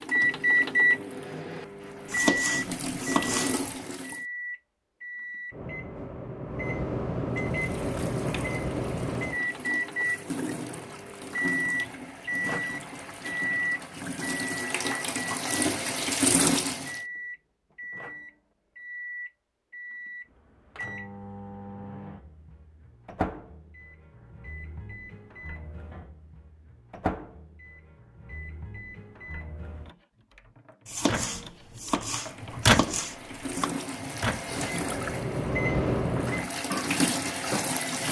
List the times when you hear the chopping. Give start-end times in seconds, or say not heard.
2.0-3.6, 30.9-33.7.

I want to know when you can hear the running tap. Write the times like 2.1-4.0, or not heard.
0.0-4.2, 7.3-17.0, 32.1-38.0.